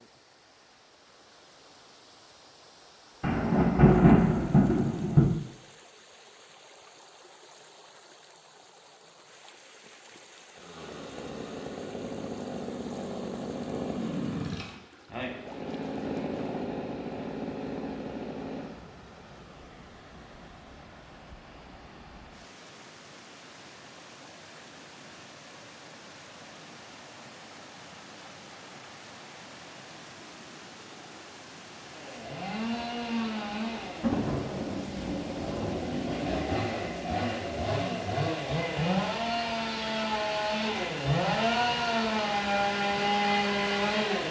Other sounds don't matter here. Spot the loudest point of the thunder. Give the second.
4 s.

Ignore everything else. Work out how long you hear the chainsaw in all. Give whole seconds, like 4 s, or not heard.
21 s.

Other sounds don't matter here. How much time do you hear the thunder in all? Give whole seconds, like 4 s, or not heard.
4 s.